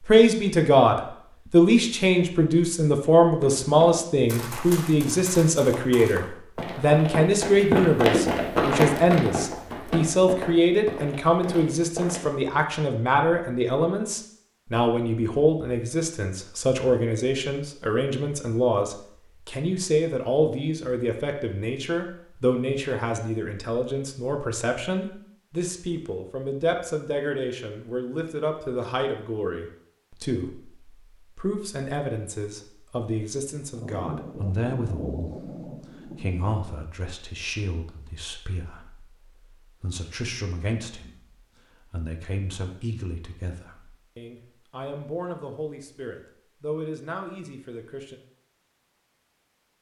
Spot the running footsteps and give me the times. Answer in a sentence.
The running footsteps can be heard from 3.2 to 12.3 s.